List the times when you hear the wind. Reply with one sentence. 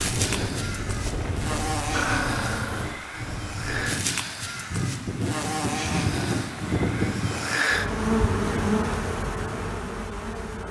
You can hear the wind from 0.0 to 7.6 s.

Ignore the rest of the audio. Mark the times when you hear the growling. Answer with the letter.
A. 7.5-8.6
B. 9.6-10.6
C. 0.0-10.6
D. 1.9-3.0
D.